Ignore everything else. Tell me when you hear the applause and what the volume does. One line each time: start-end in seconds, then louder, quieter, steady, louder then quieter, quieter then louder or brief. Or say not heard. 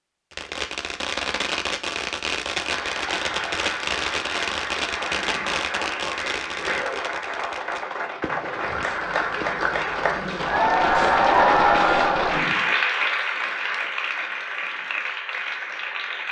2.5-16.2 louder then quieter.